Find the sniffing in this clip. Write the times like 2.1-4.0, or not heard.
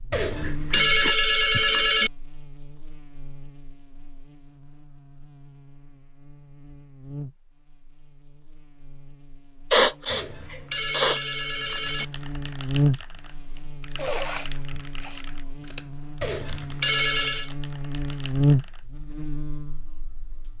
0.2-1.6, 9.7-11.2, 13.9-15.2.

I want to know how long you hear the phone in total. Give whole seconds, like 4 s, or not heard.
5 s.